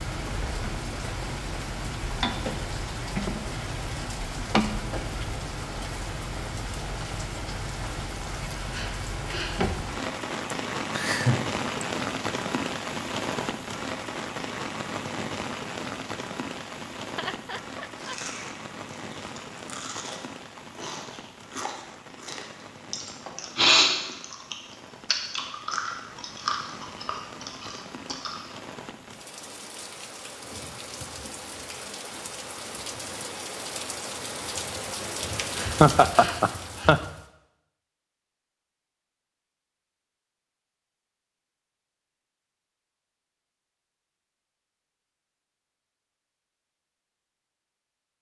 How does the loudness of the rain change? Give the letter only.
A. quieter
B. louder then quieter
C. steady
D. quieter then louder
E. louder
D.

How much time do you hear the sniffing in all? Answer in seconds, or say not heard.
3 s.